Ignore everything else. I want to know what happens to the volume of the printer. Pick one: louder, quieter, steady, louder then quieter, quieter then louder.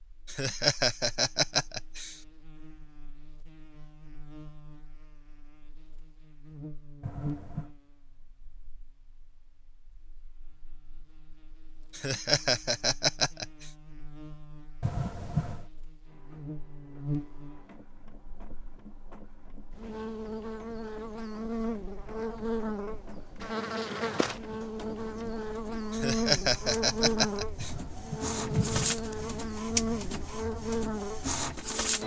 louder.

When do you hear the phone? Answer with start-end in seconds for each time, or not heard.
7.0-7.7, 14.8-15.7, 27.6-29.0.